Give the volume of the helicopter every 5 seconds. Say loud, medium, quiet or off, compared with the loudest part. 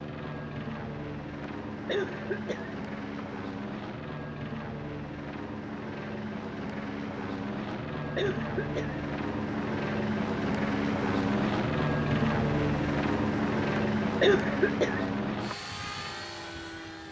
medium, medium, loud, medium.